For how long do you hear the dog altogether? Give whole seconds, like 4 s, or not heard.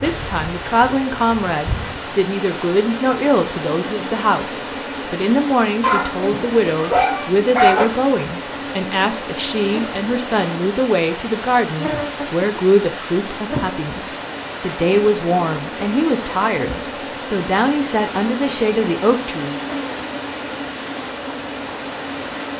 2 s.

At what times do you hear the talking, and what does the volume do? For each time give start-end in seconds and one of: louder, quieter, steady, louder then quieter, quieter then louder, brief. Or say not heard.
0.0-19.6 steady.